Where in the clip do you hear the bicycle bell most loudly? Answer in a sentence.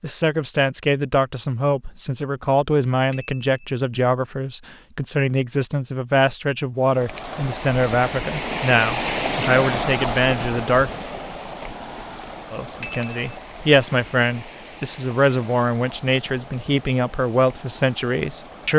The loudest moment of the bicycle bell is at 13 seconds.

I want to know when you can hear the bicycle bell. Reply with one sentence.
You can hear the bicycle bell from 3.1 to 3.6 s and from 12.8 to 13.3 s.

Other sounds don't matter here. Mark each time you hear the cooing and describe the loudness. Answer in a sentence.
You can't hear the cooing here.